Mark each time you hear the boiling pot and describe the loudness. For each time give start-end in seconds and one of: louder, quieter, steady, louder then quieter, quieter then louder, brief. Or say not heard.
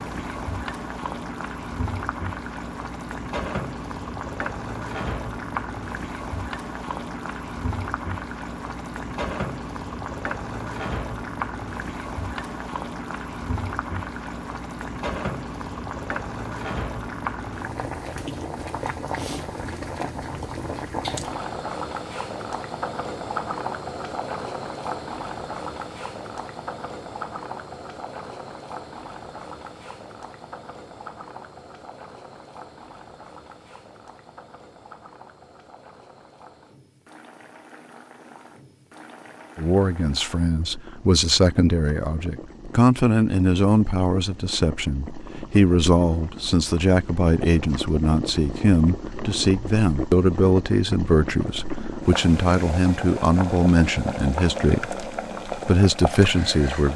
0.0-56.9 quieter then louder.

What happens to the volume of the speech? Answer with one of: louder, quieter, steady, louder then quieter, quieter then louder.
steady.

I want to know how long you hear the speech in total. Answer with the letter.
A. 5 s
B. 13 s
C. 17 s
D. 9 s
C.